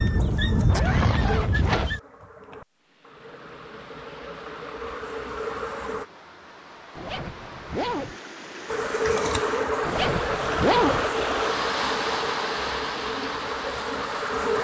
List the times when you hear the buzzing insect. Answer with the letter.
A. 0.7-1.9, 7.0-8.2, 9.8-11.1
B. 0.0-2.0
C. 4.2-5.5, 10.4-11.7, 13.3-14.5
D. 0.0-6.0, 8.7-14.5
D.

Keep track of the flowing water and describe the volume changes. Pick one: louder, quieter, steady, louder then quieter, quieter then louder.
louder.